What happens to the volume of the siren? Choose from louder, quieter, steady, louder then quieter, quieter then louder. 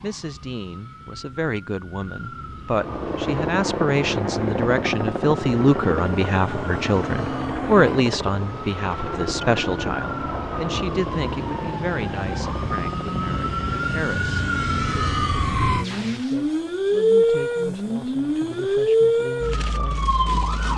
louder.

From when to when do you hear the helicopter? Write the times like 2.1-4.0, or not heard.
2.7-20.5.